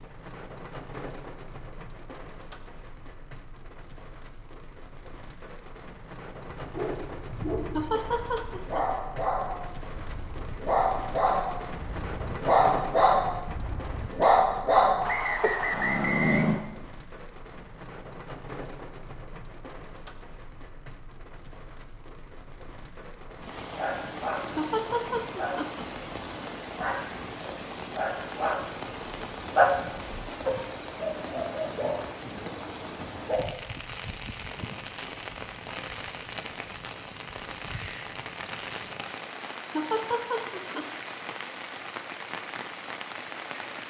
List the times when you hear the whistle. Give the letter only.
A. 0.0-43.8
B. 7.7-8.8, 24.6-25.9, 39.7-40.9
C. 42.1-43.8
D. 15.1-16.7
D.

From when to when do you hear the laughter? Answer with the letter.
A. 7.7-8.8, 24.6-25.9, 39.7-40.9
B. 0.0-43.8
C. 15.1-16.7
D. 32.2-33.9
A.